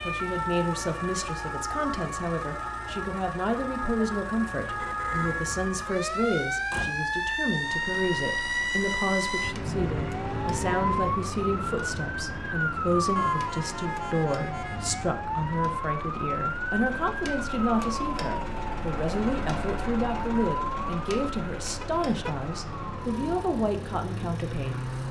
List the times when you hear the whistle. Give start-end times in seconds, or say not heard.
not heard.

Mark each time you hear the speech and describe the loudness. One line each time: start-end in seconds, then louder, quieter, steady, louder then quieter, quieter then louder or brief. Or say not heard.
0.0-24.9 steady.